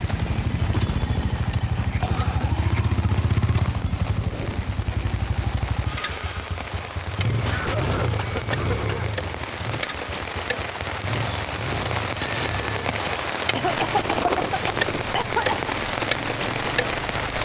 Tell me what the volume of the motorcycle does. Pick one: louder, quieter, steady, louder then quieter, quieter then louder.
quieter.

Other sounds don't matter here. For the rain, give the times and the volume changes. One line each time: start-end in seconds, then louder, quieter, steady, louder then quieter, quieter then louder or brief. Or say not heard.
0.0-17.4 louder.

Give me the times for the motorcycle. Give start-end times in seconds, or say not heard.
0.0-17.4.